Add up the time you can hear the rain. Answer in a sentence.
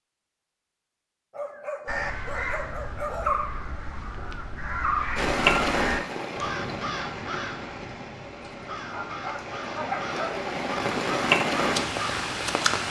The rain can be heard for 8 seconds in total.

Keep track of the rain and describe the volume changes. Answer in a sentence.
The volume of the rain goes down, then up.